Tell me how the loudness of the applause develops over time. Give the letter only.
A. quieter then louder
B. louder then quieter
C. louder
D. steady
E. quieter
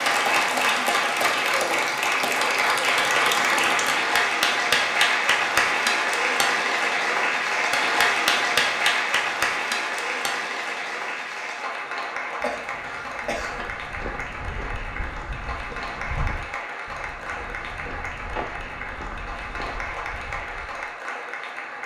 E.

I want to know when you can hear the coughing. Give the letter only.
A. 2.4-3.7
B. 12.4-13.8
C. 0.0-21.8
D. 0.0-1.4
B.